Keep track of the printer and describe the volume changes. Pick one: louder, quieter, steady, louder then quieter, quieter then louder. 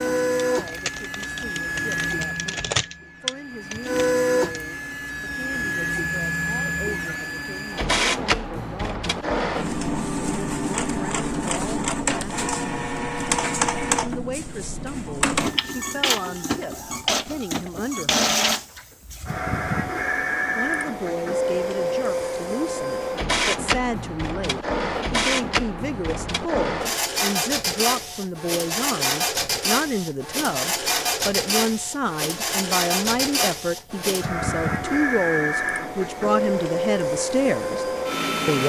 steady.